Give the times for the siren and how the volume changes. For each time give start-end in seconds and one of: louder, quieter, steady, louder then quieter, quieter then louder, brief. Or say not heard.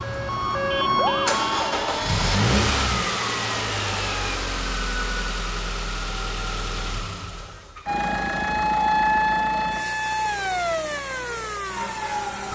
0.0-4.4 quieter
7.8-12.4 quieter.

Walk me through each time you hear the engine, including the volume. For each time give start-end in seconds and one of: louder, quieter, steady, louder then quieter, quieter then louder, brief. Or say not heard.
0.0-12.4 quieter.